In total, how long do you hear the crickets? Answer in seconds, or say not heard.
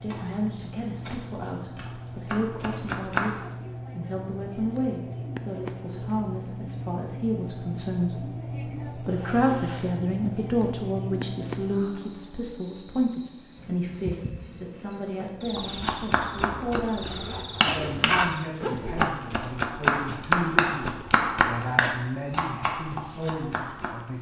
24 s.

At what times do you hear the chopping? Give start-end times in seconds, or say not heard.
0.0-3.4, 15.6-24.0.